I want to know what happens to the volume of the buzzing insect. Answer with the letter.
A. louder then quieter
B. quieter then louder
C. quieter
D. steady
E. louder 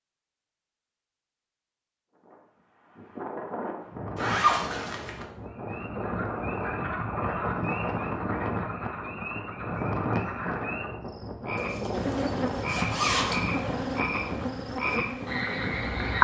D.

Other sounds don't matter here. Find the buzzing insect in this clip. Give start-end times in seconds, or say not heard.
11.9-16.1.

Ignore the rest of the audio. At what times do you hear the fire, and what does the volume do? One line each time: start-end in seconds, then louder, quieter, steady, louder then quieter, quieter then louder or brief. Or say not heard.
not heard.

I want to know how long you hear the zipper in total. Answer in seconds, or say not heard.
3 s.